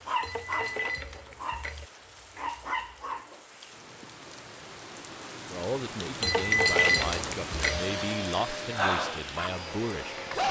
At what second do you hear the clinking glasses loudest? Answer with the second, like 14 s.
7 s.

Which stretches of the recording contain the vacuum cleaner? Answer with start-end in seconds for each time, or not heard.
7.5-10.4.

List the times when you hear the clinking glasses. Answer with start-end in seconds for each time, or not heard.
0.2-1.9, 6.2-7.8.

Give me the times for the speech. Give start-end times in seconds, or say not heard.
5.5-10.2.